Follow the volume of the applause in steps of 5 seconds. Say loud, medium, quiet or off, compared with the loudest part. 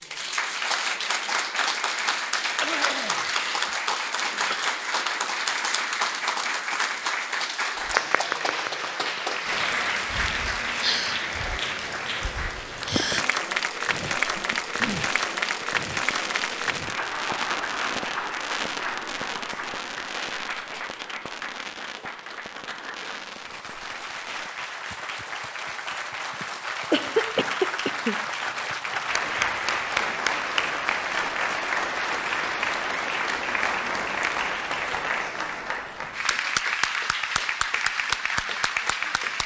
loud, loud, loud, loud, medium, loud, loud, loud.